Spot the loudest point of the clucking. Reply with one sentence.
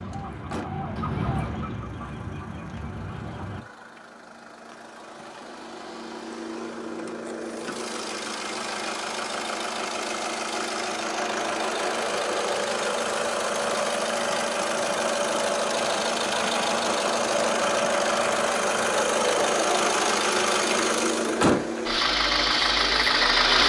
The volume of the clucking peaks at 1 second.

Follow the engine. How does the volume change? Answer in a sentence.
The volume of the engine goes up.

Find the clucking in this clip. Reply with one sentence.
You can hear the clucking from 0.0 to 3.6 s.